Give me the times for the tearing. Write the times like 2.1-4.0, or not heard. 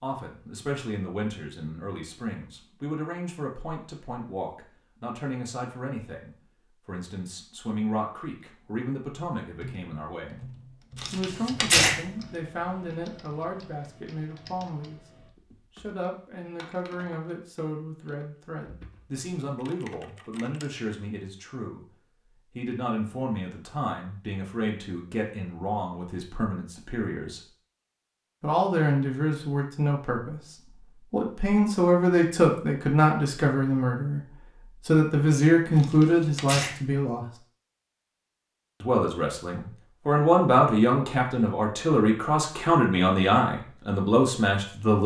10.9-11.9, 35.8-36.8.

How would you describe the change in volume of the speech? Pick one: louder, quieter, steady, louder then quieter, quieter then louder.
louder.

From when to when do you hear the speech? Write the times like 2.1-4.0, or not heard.
0.0-10.4, 11.1-15.0, 15.8-21.9, 22.5-27.4, 28.4-37.2, 38.8-45.0.